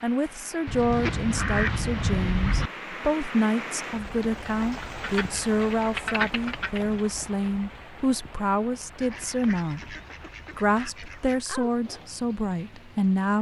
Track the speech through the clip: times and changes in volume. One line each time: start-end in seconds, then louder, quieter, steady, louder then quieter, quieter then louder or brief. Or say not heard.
0.0-9.9 steady
10.6-13.3 brief.